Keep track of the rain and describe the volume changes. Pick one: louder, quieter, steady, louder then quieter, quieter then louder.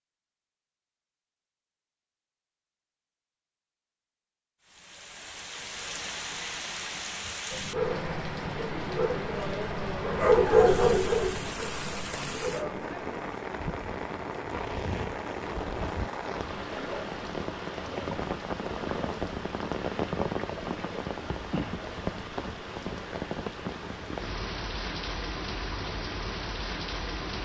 steady.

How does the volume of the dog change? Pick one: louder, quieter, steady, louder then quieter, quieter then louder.
louder then quieter.